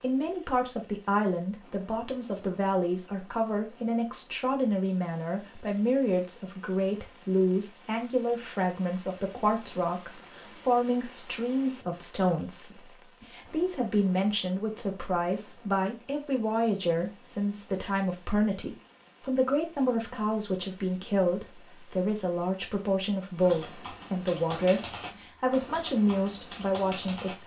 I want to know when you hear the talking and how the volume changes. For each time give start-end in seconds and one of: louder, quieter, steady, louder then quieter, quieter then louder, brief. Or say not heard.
0.0-27.4 steady.